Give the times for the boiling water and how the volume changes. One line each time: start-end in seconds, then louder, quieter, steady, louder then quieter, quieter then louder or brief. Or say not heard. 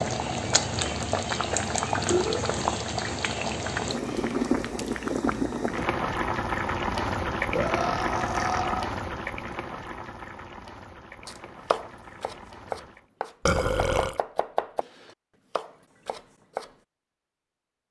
0.0-13.1 quieter.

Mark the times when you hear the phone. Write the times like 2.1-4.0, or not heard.
not heard.